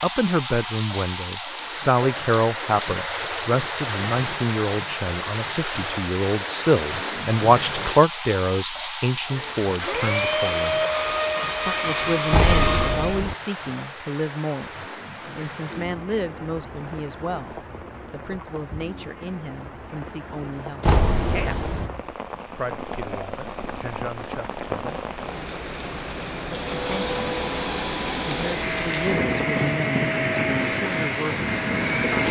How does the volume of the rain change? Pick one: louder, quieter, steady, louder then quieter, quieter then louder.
quieter then louder.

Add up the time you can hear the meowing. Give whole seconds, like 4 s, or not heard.
2 s.